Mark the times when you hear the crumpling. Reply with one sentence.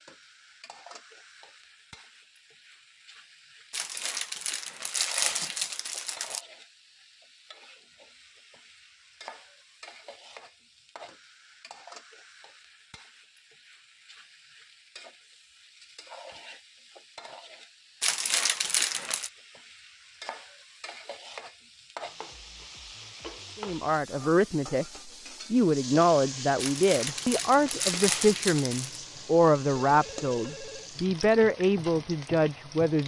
The crumpling can be heard from 3.7 to 6.4 s, from 18.0 to 19.3 s and from 26.6 to 29.0 s.